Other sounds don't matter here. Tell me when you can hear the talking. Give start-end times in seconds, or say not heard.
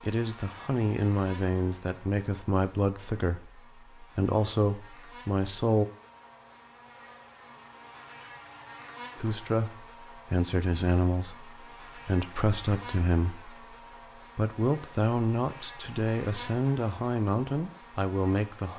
0.0-5.8, 9.2-13.6, 14.3-18.7.